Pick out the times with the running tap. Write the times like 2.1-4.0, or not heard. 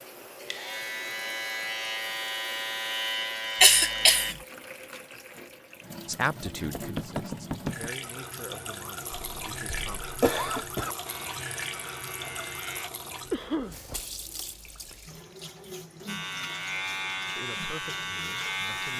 0.0-18.9.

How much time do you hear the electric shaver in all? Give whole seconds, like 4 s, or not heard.
9 s.